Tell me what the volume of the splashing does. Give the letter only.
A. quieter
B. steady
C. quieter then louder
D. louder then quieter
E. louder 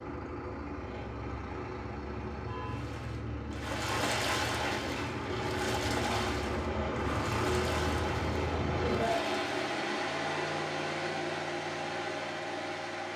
A.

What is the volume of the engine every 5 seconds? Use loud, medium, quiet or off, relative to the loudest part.
medium, loud, loud.